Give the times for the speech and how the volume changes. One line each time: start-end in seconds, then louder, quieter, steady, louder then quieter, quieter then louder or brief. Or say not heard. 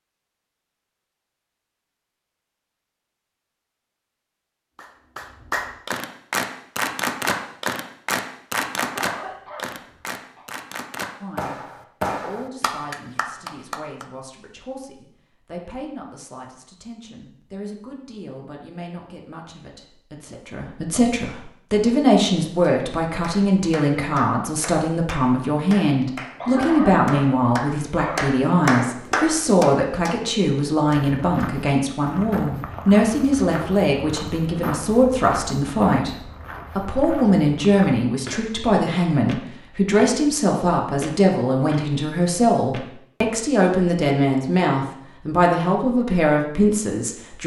11.2-47.4 louder.